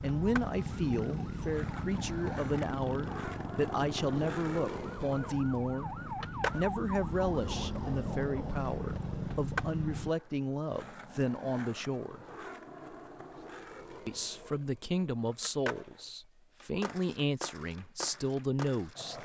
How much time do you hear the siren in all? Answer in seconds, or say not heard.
10 s.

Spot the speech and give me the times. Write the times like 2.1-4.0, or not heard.
0.0-12.2, 14.1-19.2.